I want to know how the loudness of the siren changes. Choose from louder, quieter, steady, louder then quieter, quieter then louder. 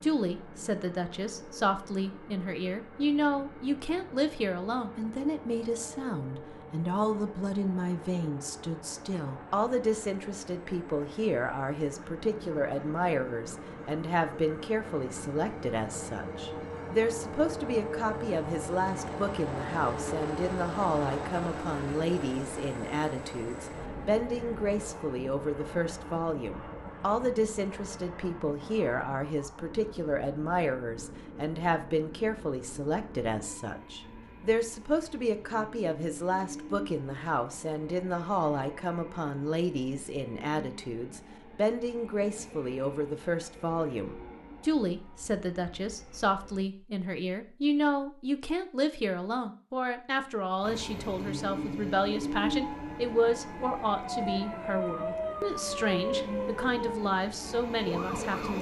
louder then quieter.